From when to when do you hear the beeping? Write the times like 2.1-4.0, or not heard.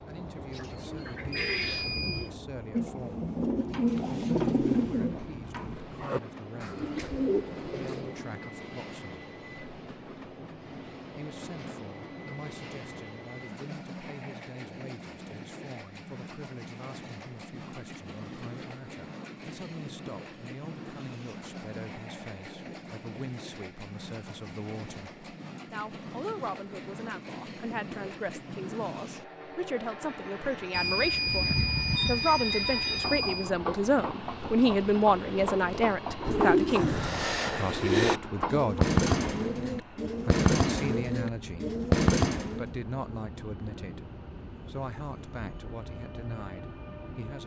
1.3-2.3, 30.7-33.5.